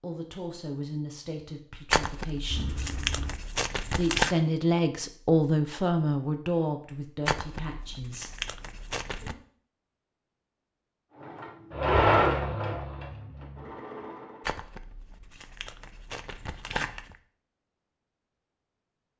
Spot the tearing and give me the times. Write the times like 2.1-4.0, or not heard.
1.9-4.3, 7.2-9.3, 14.4-17.1.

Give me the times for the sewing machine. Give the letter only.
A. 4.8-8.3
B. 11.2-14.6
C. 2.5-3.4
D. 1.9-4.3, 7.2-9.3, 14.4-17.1
B.